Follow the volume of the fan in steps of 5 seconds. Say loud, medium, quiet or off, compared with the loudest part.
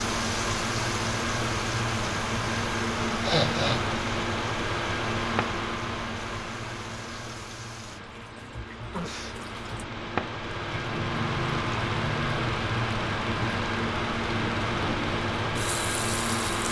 loud, medium, loud, loud.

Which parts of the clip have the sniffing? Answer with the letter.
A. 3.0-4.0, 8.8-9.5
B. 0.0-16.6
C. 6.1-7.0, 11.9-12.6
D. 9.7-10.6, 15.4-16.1
A.